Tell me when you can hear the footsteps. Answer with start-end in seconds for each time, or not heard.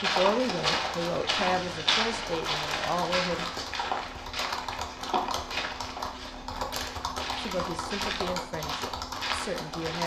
0.0-10.0.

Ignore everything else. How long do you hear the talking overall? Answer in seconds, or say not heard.
6 s.